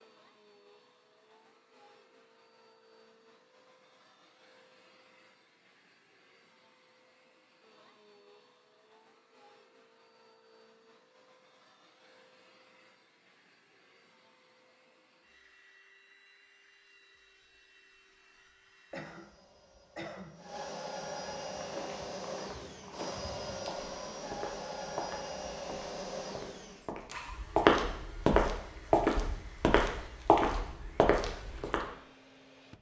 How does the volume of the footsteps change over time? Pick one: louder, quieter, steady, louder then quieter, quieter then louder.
louder.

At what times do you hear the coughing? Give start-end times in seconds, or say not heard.
18.9-20.4.